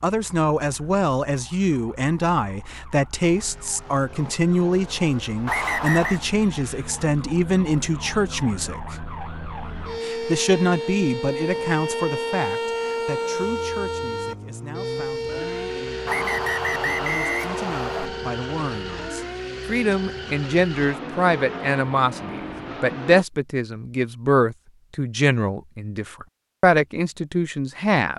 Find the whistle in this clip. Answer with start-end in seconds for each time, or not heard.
5.5-6.2, 16.1-18.1.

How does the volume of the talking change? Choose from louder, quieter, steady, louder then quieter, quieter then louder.
quieter then louder.